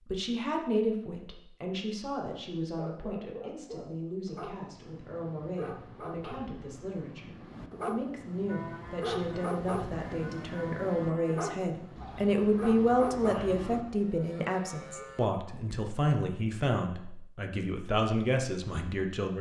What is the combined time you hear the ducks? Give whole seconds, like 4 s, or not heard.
not heard.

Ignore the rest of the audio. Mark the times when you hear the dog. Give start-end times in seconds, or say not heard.
2.8-13.8.